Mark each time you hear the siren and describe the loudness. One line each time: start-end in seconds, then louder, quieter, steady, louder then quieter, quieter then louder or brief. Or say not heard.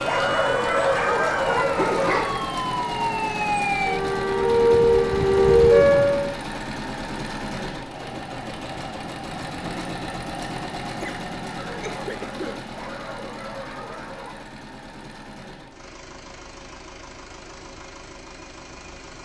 0.0-6.4 louder.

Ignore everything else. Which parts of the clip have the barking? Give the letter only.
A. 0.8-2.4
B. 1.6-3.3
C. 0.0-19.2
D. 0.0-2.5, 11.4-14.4
D.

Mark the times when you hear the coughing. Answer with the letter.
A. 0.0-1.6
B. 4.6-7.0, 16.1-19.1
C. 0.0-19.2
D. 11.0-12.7
D.